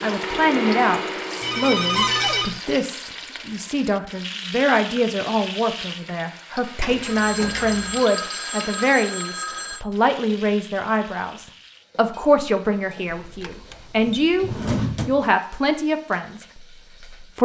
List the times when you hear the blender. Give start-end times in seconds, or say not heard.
0.0-2.3.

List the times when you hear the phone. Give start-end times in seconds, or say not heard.
1.4-2.6, 7.0-9.8, 13.1-14.2.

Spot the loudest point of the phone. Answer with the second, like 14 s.
2 s.